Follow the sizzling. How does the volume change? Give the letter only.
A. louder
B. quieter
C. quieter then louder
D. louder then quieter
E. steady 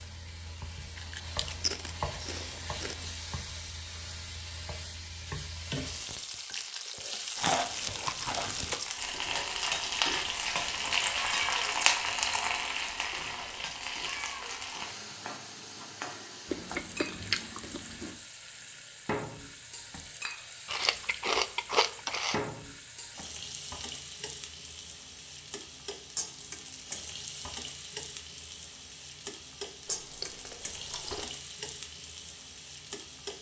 D.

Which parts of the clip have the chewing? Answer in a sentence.
The chewing can be heard from 0.9 to 3.1 s, from 7.3 to 9.0 s, from 16.4 to 18.2 s, from 20.6 to 22.4 s and from 29.9 to 31.3 s.